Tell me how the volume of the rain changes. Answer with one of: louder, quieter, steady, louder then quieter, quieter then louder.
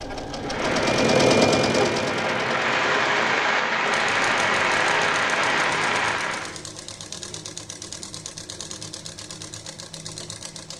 louder.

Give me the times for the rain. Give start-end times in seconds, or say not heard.
0.0-6.5.